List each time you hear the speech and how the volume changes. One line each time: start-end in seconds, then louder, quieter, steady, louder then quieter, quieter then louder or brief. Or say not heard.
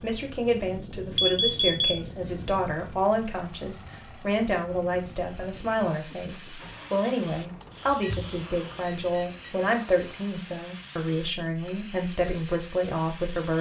0.0-13.5 steady.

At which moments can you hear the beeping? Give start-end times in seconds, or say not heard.
1.1-2.0, 7.8-9.5.